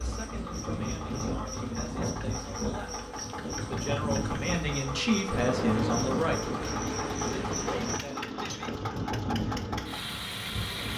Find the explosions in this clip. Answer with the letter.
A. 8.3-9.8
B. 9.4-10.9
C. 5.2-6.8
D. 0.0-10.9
C.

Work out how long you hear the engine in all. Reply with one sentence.
You can hear the engine for 11 seconds altogether.